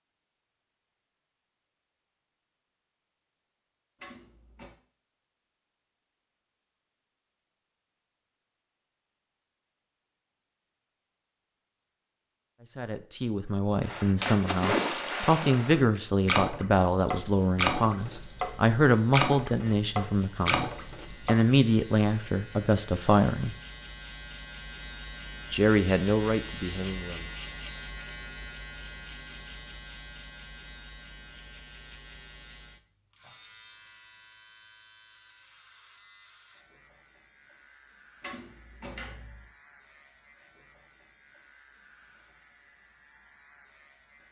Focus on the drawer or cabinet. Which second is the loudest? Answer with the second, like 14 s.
39 s.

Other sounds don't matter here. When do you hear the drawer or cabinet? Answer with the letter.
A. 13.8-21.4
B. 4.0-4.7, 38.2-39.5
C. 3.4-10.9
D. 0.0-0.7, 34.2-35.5
B.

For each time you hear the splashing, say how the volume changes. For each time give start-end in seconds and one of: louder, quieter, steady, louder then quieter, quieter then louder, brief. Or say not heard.
13.8-21.4 steady.